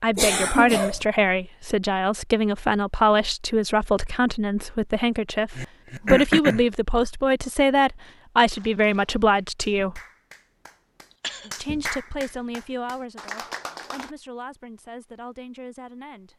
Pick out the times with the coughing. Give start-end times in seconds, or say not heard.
0.1-1.1, 5.5-6.7, 11.1-11.6.